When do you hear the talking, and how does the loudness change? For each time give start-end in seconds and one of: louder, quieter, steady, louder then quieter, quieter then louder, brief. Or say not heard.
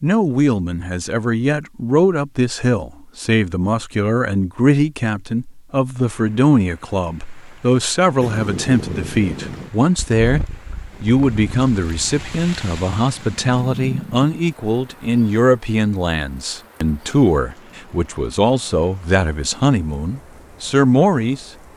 0.0-21.5 steady.